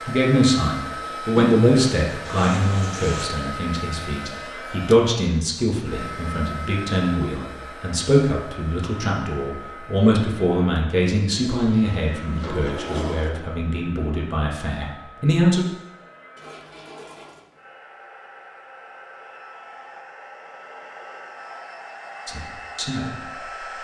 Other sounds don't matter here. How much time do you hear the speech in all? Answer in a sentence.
The speech can be heard for 17 seconds in total.